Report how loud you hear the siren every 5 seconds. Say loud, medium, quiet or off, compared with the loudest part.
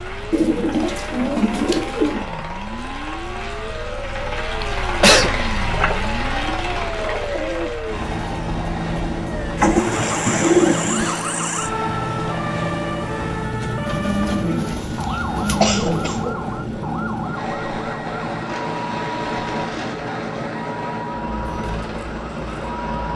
medium, loud, loud, loud, medium.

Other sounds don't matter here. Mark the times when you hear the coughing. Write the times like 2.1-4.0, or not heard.
4.6-5.3, 15.6-16.2.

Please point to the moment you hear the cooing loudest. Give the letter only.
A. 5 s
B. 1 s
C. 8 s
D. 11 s
D.